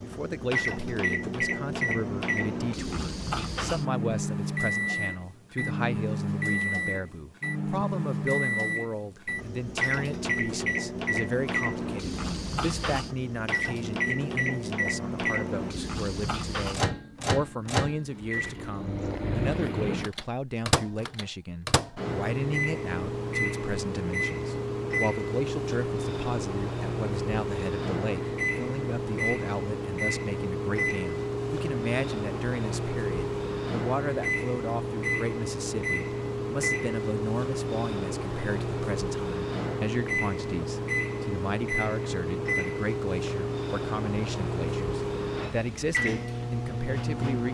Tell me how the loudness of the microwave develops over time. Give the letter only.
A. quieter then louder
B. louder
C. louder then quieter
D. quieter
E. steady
E.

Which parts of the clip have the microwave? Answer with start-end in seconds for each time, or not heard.
0.0-47.4.